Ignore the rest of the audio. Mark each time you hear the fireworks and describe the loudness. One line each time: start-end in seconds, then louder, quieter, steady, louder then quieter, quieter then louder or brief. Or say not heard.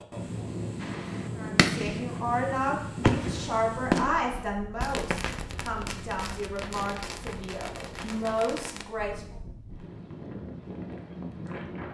0.8-2.0 brief
3.0-8.8 quieter.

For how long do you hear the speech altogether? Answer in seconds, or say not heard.
8 s.